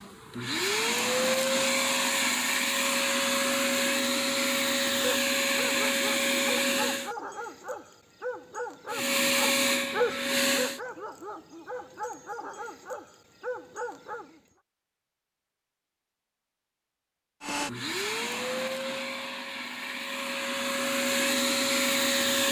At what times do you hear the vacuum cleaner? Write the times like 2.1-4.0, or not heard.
0.0-7.2, 8.9-10.8, 17.4-22.4.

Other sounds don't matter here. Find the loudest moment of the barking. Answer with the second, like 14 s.
10 s.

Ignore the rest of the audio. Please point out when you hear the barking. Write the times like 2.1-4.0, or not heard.
5.0-14.4.